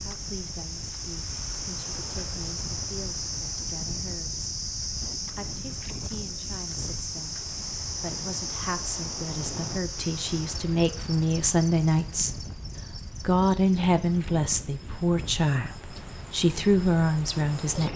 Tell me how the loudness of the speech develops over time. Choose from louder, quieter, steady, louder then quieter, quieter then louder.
louder.